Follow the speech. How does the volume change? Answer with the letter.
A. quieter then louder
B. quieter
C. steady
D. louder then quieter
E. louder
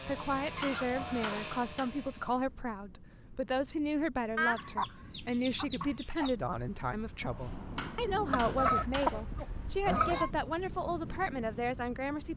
C.